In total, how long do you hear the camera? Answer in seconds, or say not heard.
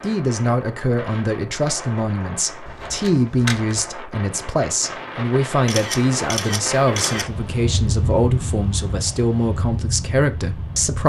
3 s.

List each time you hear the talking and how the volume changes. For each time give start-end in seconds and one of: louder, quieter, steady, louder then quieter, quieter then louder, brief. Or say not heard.
0.0-11.0 steady.